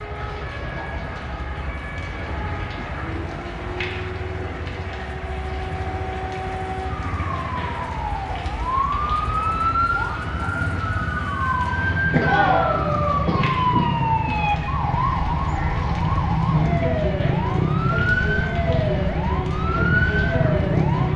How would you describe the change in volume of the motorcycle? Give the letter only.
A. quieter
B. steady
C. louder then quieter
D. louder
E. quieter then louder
D.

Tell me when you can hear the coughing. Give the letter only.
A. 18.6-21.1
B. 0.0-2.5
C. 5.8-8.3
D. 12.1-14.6
D.